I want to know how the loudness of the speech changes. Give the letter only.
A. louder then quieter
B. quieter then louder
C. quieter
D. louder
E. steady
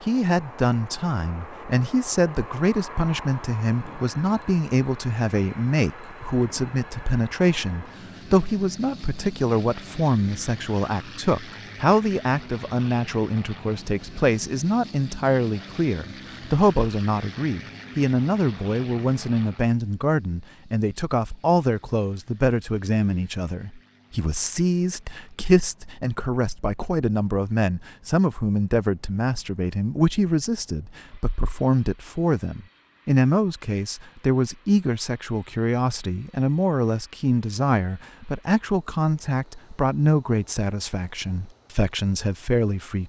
E.